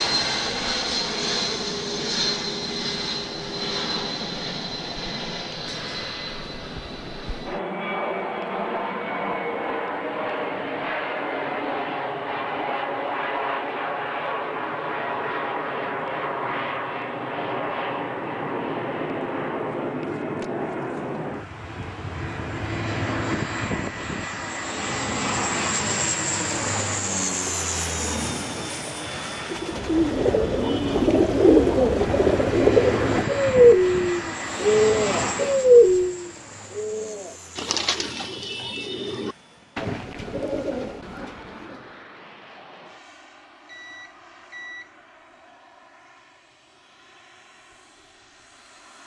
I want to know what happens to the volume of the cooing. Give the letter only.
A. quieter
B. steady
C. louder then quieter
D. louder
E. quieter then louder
A.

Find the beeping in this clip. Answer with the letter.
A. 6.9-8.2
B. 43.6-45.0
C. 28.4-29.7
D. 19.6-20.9
B.